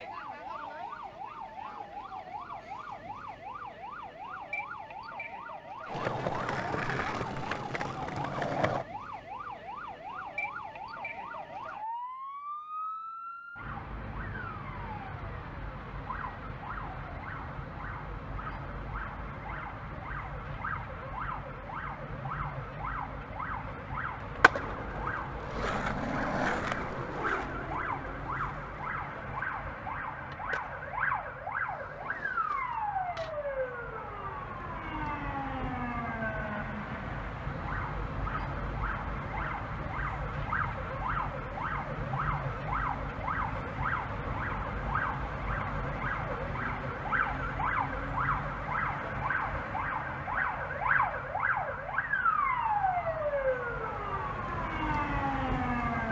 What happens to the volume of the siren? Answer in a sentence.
The volume of the siren goes up.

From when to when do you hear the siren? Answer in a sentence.
The siren can be heard from 0.0 to 56.0 s.